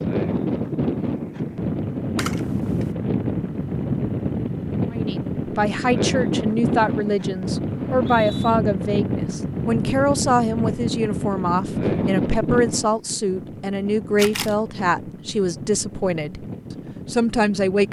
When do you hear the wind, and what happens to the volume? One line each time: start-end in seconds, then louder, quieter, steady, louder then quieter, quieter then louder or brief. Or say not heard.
0.0-17.8 quieter.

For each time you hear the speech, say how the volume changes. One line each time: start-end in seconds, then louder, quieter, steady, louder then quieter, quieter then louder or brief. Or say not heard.
4.9-16.4 steady
17.1-17.8 brief.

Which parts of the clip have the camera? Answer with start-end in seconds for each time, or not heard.
2.1-2.9, 14.2-14.6.